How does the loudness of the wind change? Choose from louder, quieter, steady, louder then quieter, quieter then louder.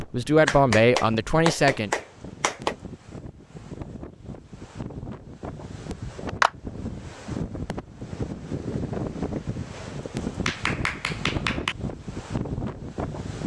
louder.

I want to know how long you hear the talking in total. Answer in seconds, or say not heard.
2 s.